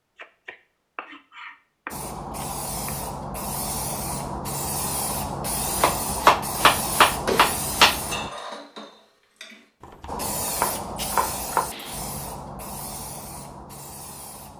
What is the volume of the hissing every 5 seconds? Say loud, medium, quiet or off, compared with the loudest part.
loud, loud, medium.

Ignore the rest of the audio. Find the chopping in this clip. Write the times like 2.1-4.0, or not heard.
0.1-3.0, 5.8-8.0, 10.0-11.7.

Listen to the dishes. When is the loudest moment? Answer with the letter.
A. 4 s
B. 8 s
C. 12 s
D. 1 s
B.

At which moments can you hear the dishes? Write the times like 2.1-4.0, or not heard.
7.9-9.6.